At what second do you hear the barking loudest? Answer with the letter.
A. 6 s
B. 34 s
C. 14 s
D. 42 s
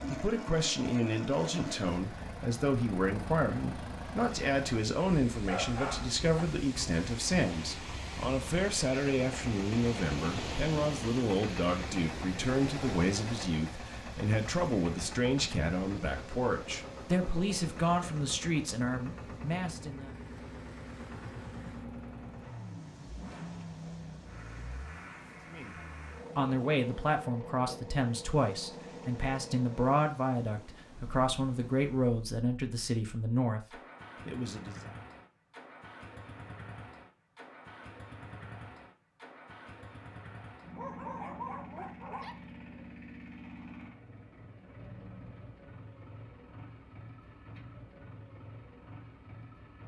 A.